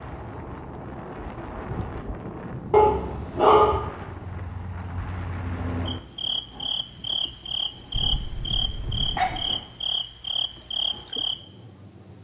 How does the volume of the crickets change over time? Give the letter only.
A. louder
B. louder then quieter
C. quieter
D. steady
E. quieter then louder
A.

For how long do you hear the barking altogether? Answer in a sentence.
You can hear the barking for 3 seconds altogether.